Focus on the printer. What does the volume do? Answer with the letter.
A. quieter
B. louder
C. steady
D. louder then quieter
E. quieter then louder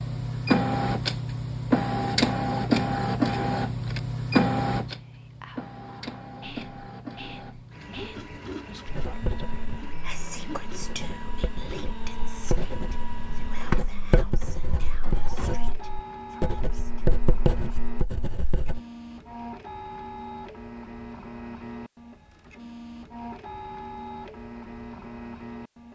A.